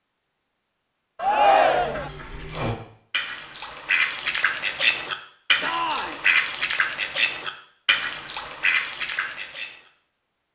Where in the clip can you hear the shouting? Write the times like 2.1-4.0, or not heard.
1.1-2.1, 5.6-6.2.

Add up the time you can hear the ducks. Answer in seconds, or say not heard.
8 s.